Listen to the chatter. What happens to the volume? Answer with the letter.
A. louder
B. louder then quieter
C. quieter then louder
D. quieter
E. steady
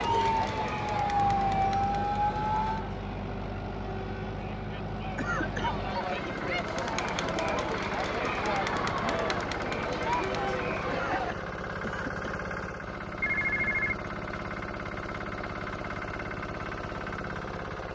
C.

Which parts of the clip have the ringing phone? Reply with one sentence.
The ringing phone can be heard from 1.7 to 2.8 s and from 13.2 to 13.9 s.